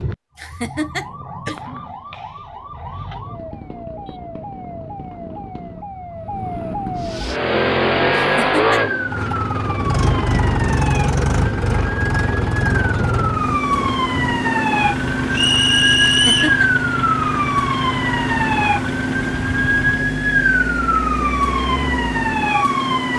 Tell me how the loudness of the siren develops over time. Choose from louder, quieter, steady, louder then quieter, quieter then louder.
louder.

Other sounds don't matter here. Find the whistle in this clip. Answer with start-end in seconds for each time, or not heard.
15.3-16.6.